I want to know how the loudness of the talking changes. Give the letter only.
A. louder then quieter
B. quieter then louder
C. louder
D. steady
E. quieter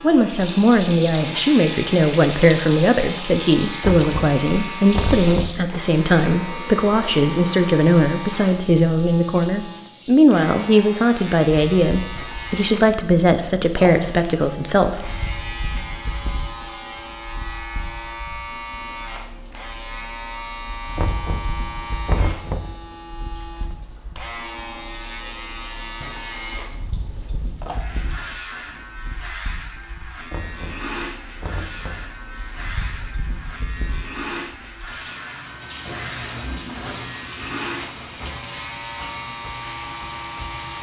D.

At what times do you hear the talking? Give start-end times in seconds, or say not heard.
0.0-15.2.